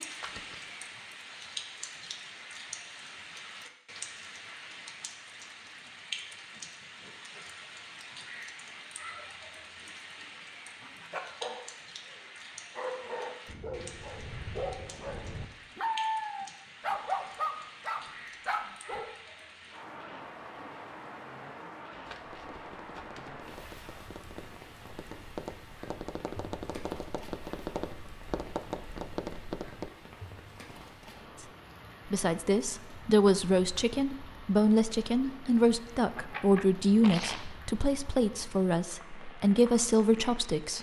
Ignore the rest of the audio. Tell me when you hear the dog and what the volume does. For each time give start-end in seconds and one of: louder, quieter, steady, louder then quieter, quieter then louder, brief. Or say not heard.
10.8-19.1 louder.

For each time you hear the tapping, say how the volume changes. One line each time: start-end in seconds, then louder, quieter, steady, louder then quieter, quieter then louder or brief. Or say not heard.
22.2-29.9 louder.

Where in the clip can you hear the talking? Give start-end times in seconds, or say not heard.
32.0-40.7.